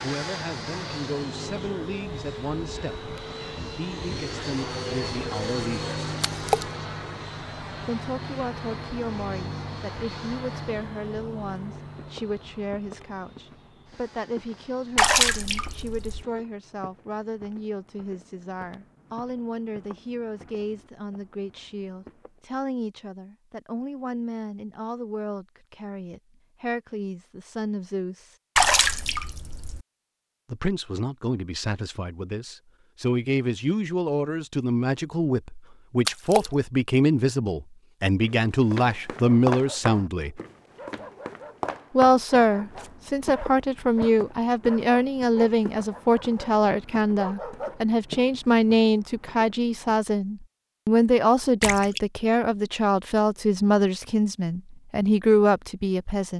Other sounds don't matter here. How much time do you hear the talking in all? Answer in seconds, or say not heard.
51 s.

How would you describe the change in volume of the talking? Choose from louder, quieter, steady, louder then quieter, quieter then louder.
louder.